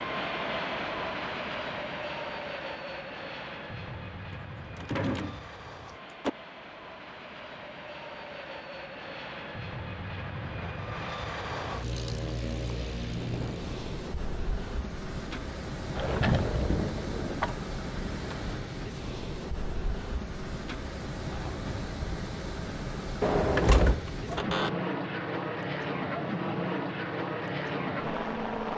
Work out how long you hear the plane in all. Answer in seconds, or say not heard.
29 s.